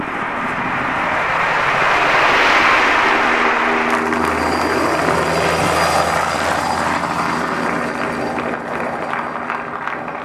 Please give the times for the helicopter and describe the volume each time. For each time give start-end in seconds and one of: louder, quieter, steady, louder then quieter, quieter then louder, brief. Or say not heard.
0.0-10.2 louder then quieter.